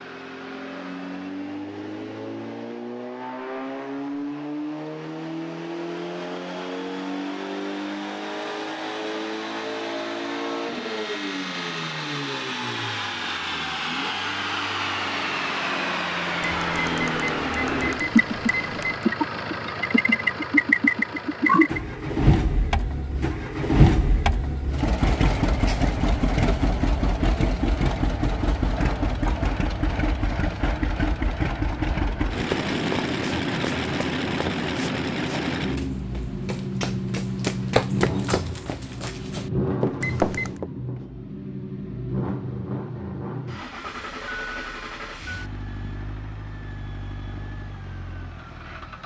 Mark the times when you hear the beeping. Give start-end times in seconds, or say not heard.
16.4-19.1, 40.0-40.6.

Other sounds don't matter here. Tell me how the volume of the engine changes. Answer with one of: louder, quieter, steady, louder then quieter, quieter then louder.
louder then quieter.